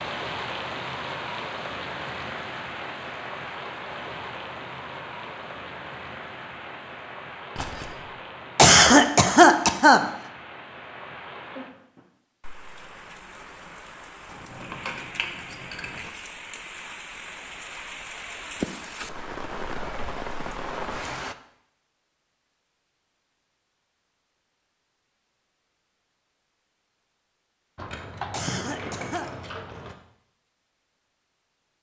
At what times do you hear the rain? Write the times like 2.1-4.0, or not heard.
0.0-21.4.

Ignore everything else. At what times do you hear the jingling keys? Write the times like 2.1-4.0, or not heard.
7.5-8.0, 14.3-16.0, 27.8-29.9.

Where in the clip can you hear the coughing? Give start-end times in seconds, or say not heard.
8.6-10.1, 28.3-29.2.